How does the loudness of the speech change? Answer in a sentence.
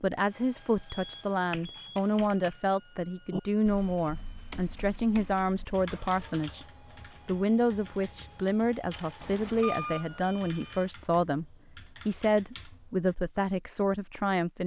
The loudness of the speech stays about the same.